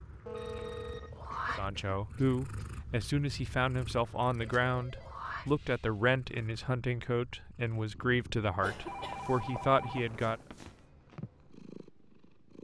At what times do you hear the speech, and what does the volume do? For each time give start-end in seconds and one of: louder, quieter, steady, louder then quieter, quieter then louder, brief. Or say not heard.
1.6-10.4 steady.